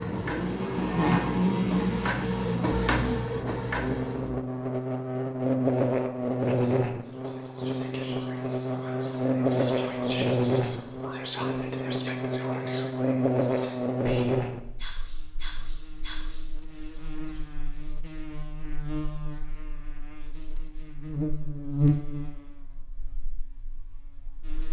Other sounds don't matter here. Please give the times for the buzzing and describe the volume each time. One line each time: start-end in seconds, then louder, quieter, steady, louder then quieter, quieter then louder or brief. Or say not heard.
0.0-24.6 quieter then louder.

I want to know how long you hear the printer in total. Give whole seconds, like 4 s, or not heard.
4 s.